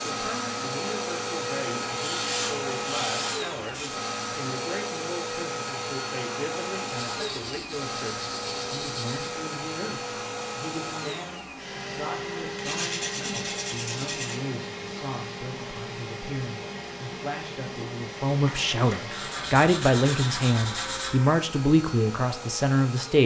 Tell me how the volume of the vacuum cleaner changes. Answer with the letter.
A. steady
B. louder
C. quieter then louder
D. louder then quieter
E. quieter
E.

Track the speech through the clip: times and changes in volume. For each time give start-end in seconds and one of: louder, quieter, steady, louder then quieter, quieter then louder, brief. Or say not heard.
0.0-23.2 louder.